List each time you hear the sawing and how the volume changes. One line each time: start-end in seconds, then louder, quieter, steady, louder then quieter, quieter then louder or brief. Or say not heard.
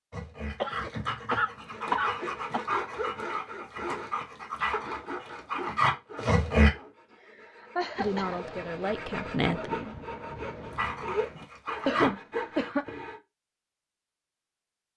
1.7-13.2 quieter then louder.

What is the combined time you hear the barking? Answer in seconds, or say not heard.
8 s.